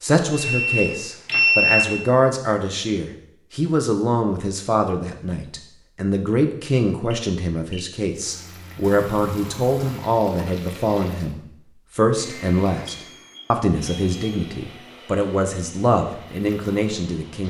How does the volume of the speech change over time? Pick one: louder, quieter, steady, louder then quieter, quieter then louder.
steady.